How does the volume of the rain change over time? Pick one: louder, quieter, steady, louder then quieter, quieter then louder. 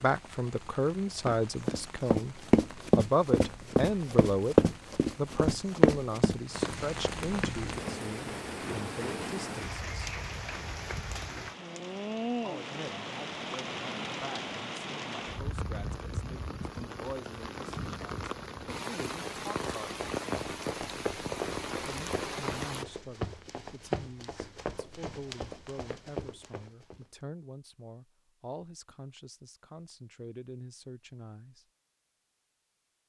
louder.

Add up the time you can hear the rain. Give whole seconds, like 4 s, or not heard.
23 s.